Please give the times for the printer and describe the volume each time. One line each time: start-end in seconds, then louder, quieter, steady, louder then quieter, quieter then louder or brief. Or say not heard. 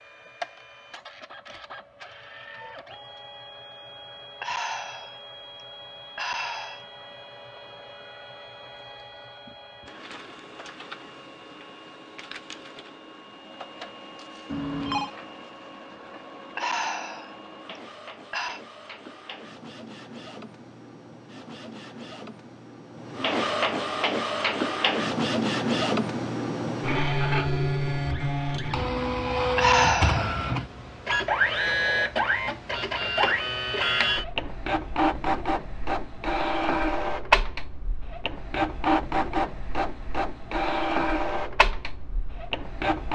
0.0-43.0 louder.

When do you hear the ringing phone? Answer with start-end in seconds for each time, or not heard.
14.4-15.1.